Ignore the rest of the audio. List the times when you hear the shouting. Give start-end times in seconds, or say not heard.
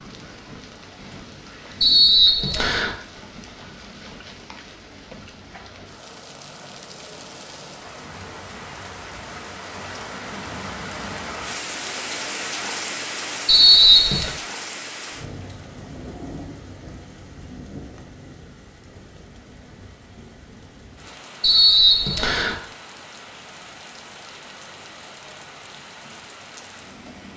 not heard.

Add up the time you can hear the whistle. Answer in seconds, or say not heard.
3 s.